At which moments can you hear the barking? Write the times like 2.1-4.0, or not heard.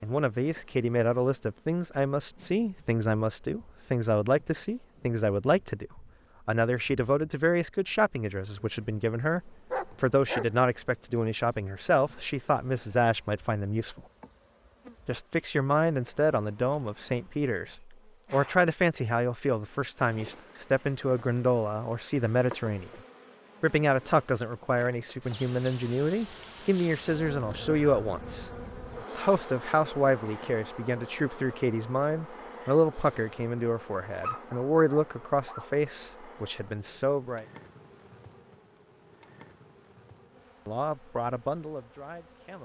9.7-10.6, 34.2-35.7.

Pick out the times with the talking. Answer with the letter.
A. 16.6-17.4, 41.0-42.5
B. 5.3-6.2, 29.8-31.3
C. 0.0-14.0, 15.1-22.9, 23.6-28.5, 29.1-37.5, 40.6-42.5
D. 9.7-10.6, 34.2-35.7
C.